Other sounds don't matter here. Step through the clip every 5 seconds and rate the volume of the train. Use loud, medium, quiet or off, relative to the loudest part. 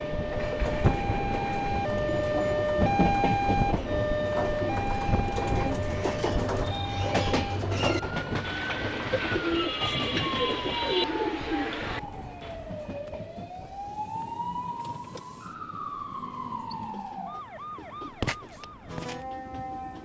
loud, loud, medium, quiet.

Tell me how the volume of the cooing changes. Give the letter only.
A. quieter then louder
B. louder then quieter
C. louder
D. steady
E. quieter
C.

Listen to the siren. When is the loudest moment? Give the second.
3 s.